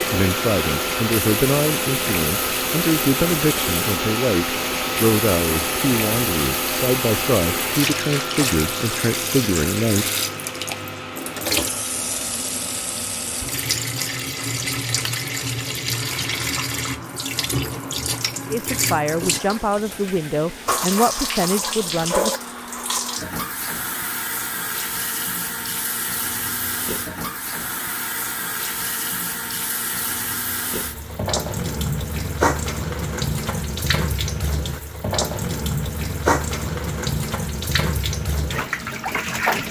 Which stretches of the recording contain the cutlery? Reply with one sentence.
The cutlery can't be heard in this clip.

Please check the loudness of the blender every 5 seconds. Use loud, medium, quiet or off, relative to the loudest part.
loud, loud, medium, quiet, quiet, quiet, quiet, quiet.